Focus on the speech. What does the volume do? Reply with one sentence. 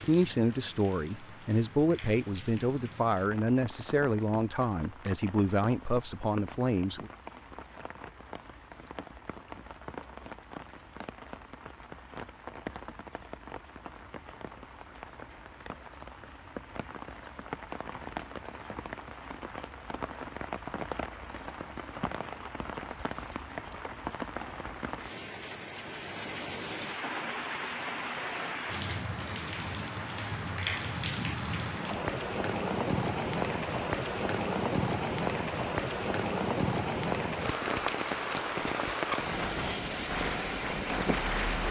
The loudness of the speech stays about the same.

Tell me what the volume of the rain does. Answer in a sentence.
The loudness of the rain goes up.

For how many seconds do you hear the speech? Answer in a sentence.
You can hear the speech for 7 seconds altogether.